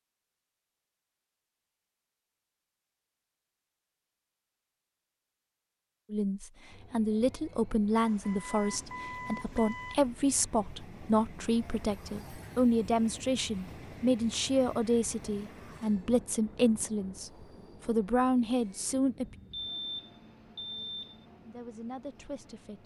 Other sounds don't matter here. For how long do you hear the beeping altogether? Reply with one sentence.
The beeping can be heard for 4 seconds in total.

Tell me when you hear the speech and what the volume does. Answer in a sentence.
You can hear the speech from 6.1 to 19.2 s, at a steady volume; and briefly from 21.4 to 22.8 s.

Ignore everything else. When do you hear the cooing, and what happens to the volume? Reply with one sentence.
You can't hear the cooing here.